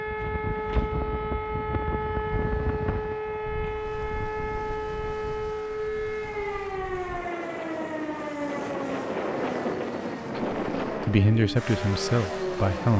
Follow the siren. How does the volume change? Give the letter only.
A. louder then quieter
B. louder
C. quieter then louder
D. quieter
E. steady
D.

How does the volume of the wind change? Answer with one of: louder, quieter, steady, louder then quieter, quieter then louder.
quieter then louder.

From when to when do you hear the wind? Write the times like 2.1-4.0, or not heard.
0.0-11.2.